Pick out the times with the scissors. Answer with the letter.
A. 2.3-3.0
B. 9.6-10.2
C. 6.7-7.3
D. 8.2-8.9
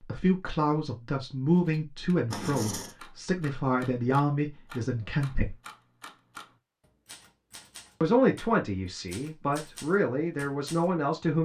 A.